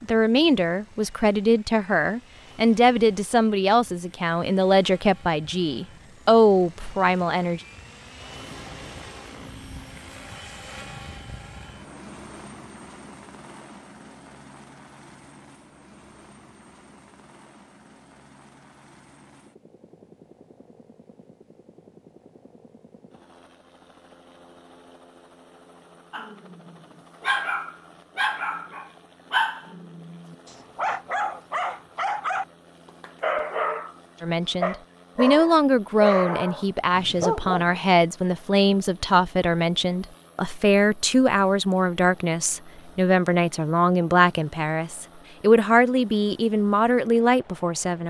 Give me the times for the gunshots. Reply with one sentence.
The gunshots can't be heard in this clip.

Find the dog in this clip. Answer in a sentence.
The dog can be heard from 26.1 to 34.0 s and from 34.6 to 37.8 s.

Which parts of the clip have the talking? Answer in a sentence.
The talking can be heard from 0.0 to 7.6 s and from 34.2 to 48.0 s.